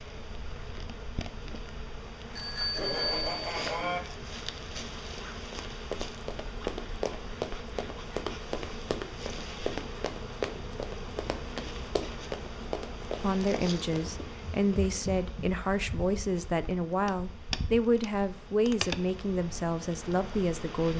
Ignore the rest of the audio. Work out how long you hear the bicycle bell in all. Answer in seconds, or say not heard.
2 s.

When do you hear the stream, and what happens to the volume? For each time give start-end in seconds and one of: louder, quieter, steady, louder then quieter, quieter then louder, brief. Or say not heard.
not heard.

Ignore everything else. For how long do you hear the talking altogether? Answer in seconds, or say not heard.
8 s.